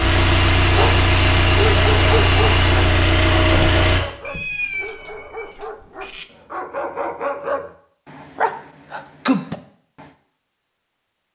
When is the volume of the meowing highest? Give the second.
5 s.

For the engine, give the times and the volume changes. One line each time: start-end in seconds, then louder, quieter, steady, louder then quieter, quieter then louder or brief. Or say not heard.
0.0-4.0 steady.